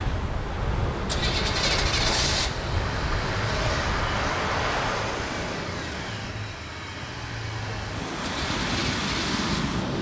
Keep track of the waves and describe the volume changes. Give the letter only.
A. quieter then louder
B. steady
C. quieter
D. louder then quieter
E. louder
A.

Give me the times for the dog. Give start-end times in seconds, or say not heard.
not heard.